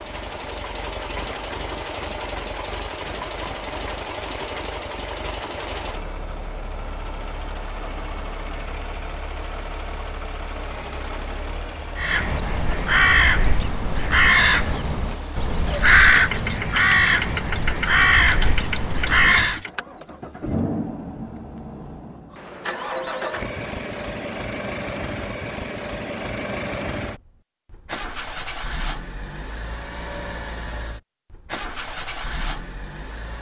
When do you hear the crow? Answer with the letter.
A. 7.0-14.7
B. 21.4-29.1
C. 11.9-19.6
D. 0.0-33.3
C.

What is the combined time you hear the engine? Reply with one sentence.
You can hear the engine for 33 seconds altogether.